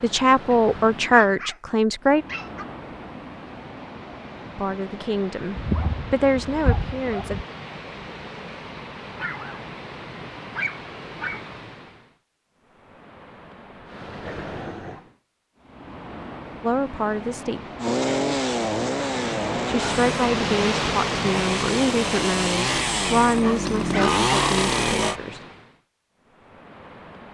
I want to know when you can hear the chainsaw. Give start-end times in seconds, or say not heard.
17.8-25.1.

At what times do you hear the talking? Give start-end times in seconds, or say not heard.
0.0-2.2, 4.5-7.4, 16.6-17.6, 19.6-25.4.